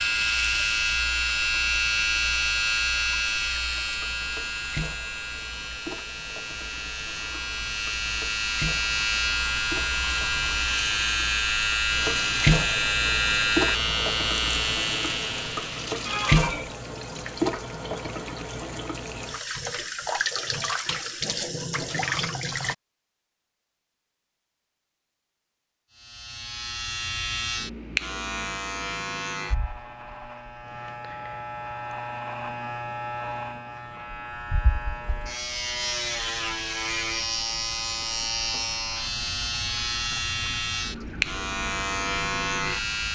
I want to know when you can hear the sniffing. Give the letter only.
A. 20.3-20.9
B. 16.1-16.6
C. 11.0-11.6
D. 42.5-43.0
B.